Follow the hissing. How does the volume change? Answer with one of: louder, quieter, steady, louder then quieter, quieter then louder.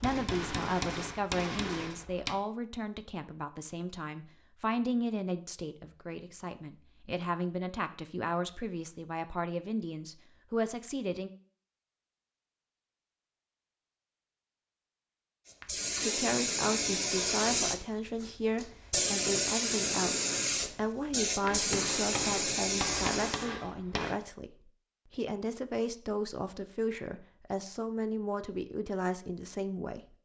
steady.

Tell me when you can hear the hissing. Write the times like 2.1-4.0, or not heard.
15.4-23.5.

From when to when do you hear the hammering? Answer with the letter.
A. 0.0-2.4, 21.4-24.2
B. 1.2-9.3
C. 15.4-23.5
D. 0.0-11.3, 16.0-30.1
A.